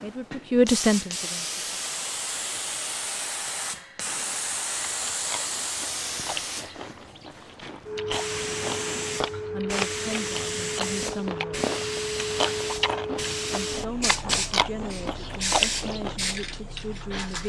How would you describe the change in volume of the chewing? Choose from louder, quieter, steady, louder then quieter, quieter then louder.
louder.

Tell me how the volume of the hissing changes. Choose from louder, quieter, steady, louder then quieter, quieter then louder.
steady.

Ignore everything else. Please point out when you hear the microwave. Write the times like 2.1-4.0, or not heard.
not heard.